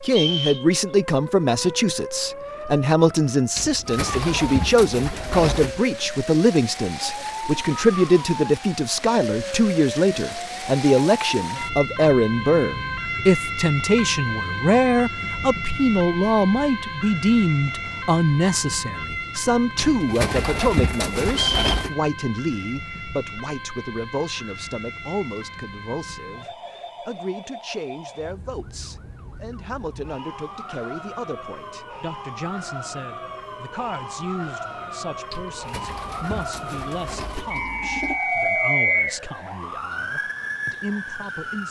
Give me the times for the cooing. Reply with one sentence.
The cooing can be heard from 3.5 to 5.8 s, from 19.8 to 21.9 s and from 35.3 to 38.2 s.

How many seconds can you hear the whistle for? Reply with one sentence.
You can hear the whistle for 3 seconds altogether.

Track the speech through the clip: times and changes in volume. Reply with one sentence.
You can hear the speech from 0.0 to 41.6 s, getting quieter.